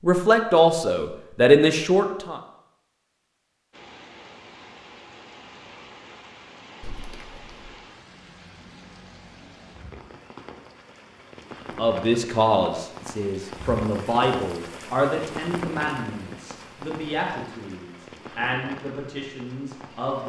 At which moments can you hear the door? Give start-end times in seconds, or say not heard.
6.8-7.7.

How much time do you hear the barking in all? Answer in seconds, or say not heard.
not heard.